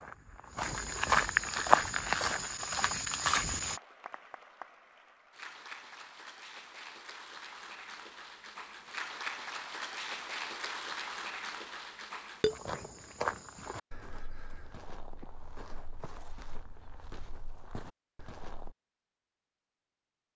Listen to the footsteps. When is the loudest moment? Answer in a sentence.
The loudest moment of the footsteps is at 2 seconds.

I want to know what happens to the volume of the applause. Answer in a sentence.
The volume of the applause goes up.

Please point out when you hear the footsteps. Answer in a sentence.
You can hear the footsteps from 0.0 to 3.8 s and from 12.4 to 18.8 s.